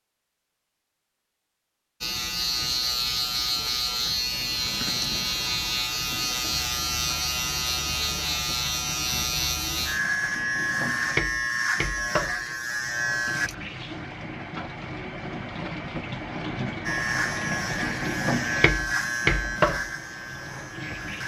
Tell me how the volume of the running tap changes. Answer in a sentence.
The loudness of the running tap goes up.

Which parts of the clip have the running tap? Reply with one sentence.
You can hear the running tap from 4.2 to 21.2 s.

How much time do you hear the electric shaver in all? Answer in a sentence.
You can hear the electric shaver for 16 seconds altogether.